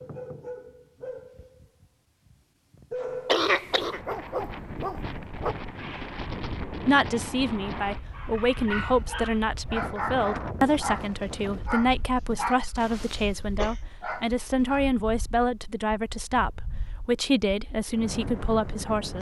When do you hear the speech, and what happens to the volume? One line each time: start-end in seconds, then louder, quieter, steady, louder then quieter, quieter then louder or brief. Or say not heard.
6.8-19.1 steady.